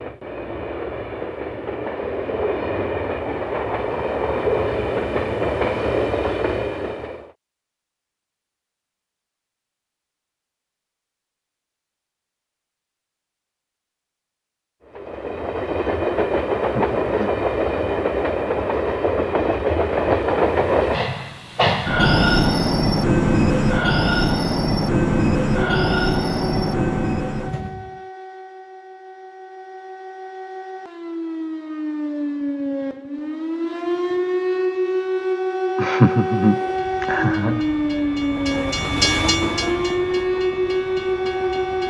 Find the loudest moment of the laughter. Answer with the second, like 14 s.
36 s.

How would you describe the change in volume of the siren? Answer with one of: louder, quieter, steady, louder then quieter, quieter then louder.
louder.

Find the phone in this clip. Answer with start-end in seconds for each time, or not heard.
not heard.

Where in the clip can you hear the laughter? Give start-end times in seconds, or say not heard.
16.7-17.4, 35.8-37.6.